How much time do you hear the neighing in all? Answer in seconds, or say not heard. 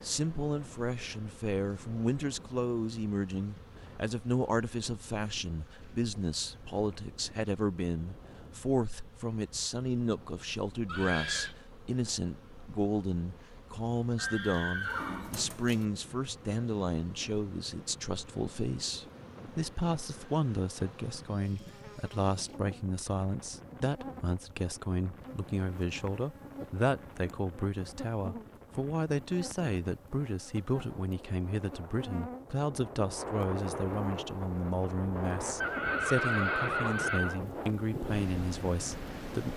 4 s.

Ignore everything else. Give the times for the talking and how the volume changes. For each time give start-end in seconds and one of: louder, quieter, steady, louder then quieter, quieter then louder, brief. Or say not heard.
0.0-39.5 steady.